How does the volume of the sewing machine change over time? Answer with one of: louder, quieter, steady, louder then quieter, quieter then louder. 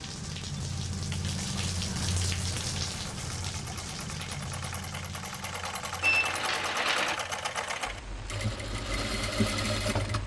louder.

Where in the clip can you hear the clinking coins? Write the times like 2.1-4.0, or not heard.
6.0-7.2.